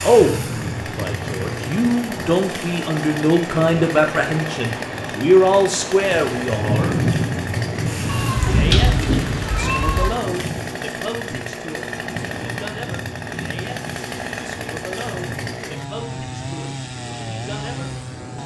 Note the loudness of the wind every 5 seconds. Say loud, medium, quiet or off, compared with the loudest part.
medium, loud, medium, quiet.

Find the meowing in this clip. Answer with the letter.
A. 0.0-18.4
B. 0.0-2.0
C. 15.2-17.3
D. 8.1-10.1
D.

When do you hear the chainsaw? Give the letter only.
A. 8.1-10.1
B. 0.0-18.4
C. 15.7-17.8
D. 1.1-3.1
B.